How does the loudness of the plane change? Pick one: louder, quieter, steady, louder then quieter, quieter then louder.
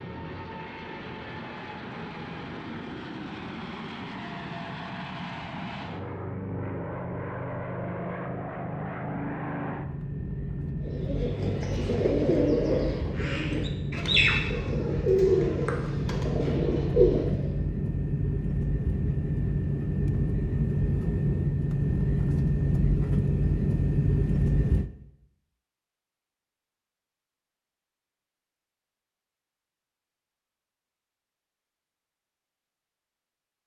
louder.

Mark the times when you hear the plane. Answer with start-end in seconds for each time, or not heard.
0.0-24.9.